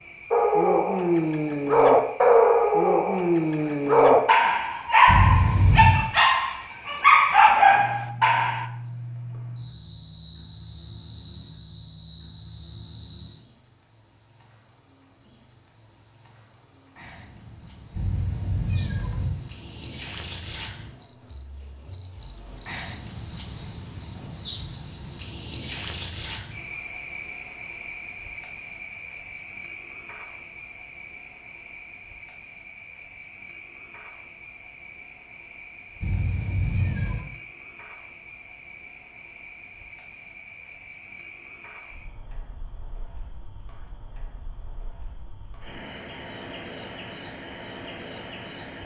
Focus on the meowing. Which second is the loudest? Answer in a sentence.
The volume of the meowing peaks at 6 seconds.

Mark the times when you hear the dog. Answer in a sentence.
The dog can be heard from 0.3 to 8.7 s.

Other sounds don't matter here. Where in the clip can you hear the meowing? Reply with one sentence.
You can hear the meowing from 5.0 to 6.1 s, from 17.9 to 19.4 s and from 36.0 to 37.2 s.